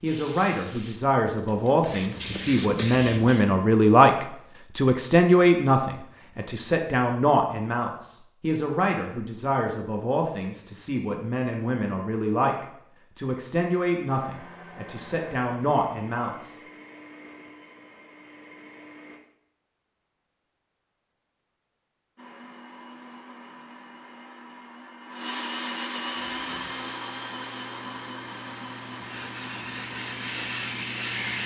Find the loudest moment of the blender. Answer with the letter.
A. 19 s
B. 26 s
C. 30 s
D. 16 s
B.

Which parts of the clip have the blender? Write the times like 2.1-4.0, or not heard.
14.1-19.2, 22.1-31.2.